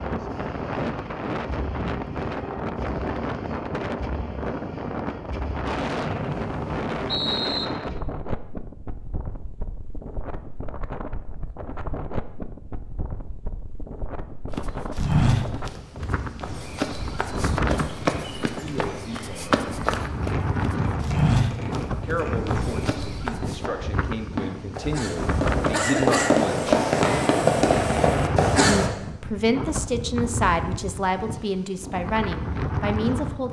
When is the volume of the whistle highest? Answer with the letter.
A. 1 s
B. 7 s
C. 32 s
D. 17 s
B.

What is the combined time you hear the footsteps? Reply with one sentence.
The footsteps can be heard for 9 seconds in total.